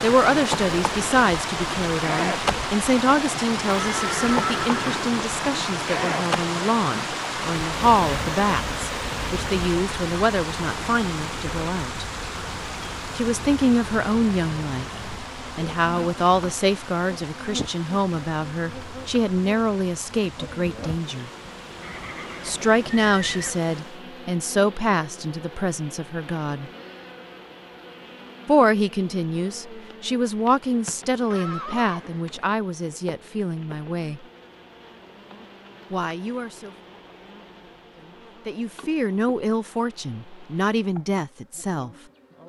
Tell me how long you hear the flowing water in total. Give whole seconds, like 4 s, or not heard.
24 s.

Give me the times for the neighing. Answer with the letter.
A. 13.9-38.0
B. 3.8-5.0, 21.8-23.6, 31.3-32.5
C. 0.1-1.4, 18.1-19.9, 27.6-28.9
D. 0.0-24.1
B.